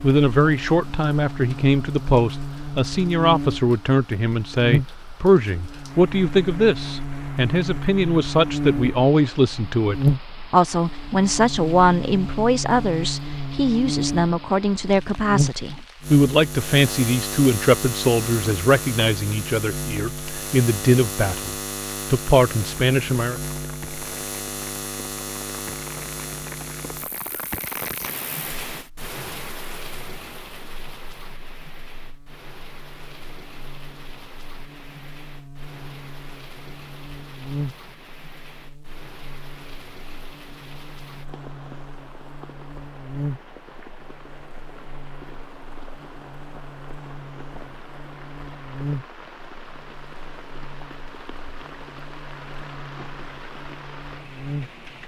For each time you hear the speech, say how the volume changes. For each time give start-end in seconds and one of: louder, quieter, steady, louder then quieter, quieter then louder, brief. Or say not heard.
0.0-23.4 steady.